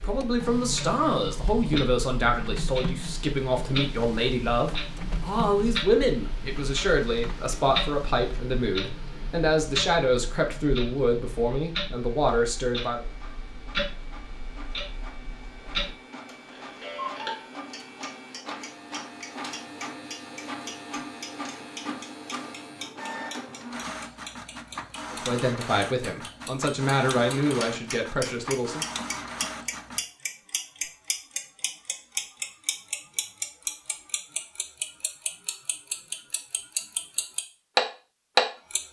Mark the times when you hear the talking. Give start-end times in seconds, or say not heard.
0.0-13.1, 25.1-28.9.